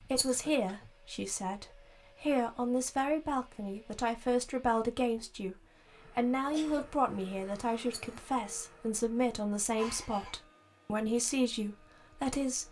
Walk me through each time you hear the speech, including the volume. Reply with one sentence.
You can hear the speech from 0.0 to 12.6 s, at a steady volume.